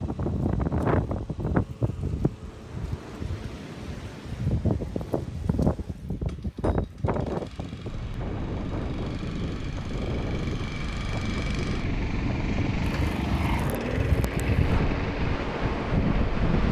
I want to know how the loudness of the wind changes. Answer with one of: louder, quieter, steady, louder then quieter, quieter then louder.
steady.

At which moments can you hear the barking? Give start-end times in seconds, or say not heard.
not heard.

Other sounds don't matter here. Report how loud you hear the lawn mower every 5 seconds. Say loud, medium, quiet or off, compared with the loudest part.
quiet, quiet, loud, loud.